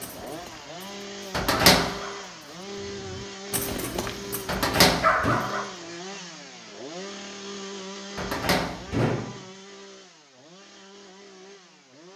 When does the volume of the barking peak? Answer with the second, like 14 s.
5 s.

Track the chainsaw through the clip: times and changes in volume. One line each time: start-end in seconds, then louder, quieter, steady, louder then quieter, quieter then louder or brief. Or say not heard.
0.0-12.1 quieter.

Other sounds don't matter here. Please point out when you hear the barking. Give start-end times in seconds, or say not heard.
0.0-5.8.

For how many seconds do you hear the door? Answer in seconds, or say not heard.
3 s.